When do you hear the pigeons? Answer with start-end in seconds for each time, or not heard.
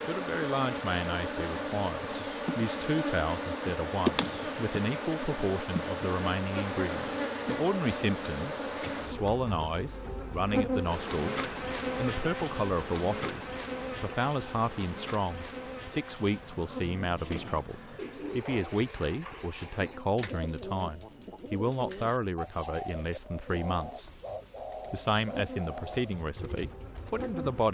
16.9-27.4.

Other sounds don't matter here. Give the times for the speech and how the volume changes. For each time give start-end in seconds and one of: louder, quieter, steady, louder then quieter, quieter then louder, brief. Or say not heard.
0.0-13.4 steady
14.0-24.2 steady
24.9-27.6 brief.